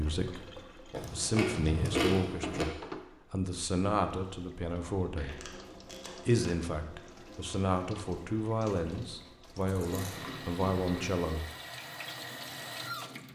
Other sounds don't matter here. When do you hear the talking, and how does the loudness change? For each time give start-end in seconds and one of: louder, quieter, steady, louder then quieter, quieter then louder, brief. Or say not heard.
0.0-11.4 steady.